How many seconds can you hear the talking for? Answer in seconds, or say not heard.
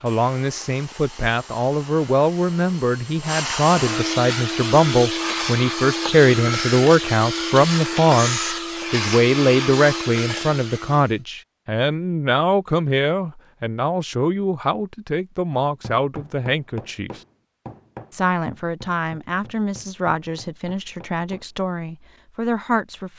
22 s.